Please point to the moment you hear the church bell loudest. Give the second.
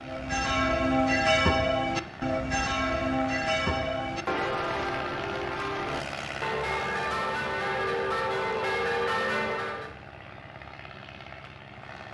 1 s.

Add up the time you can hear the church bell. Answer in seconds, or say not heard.
10 s.